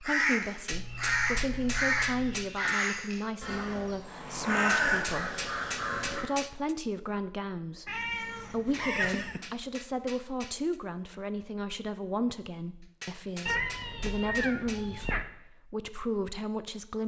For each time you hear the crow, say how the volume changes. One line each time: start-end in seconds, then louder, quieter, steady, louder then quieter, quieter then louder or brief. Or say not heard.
0.0-6.2 steady.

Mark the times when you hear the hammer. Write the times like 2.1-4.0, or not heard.
0.7-2.8, 4.5-6.8, 8.6-10.8, 12.8-15.1.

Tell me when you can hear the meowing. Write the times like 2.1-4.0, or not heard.
0.7-2.5, 7.8-9.4, 13.4-15.2.